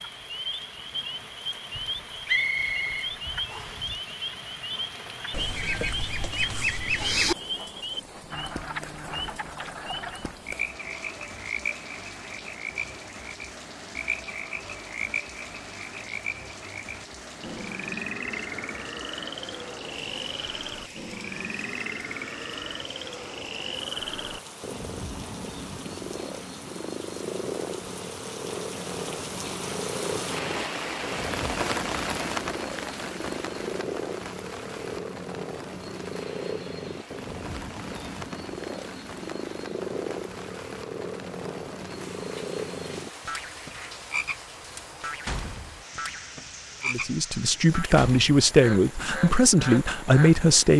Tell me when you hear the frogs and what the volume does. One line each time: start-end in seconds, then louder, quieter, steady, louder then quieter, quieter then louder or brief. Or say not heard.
0.0-50.5 steady.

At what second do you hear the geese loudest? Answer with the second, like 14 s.
7 s.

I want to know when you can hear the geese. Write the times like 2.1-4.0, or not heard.
5.3-7.3.